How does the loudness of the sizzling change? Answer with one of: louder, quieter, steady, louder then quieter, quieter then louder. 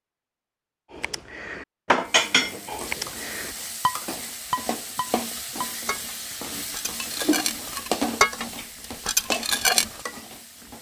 louder then quieter.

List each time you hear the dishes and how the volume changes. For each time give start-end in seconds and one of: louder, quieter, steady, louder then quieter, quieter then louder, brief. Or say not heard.
0.9-10.0 quieter then louder.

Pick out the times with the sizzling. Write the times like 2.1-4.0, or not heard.
2.0-10.7.